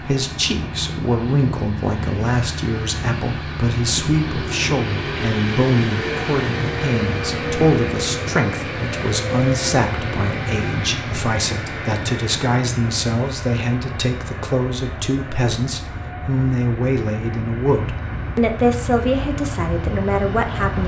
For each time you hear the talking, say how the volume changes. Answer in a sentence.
The talking can be heard from 0.0 to 20.8 s, at a steady volume.